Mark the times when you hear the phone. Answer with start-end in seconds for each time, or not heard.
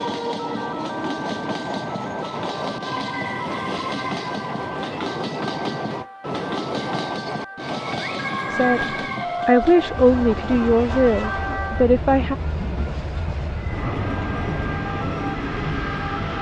8.0-9.1.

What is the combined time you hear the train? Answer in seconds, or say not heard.
16 s.